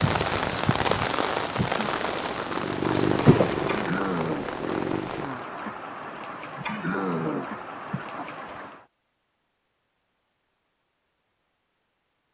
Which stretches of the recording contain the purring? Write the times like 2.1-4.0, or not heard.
1.8-5.3.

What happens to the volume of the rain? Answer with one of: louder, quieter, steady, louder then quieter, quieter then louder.
quieter.